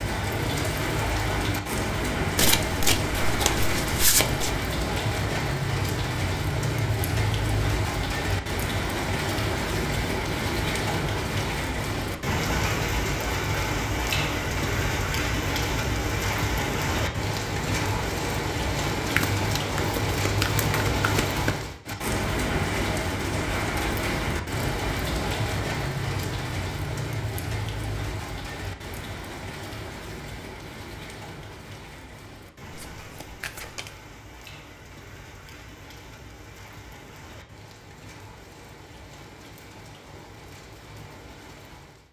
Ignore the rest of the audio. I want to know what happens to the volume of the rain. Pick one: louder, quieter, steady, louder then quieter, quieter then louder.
quieter.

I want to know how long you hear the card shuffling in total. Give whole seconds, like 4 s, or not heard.
6 s.